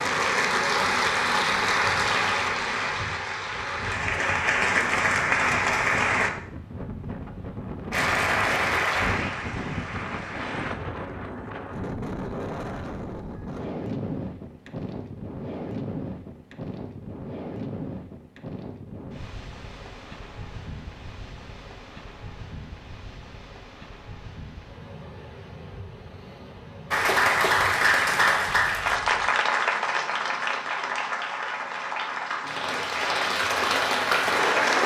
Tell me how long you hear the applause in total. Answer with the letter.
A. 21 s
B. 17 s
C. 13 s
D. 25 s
B.